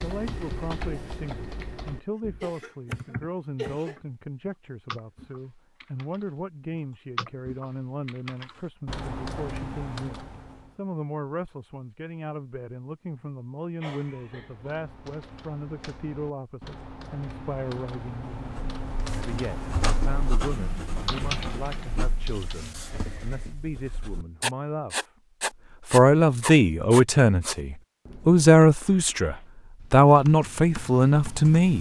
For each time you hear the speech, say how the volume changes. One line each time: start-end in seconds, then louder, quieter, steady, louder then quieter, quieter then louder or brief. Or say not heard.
0.0-31.7 louder.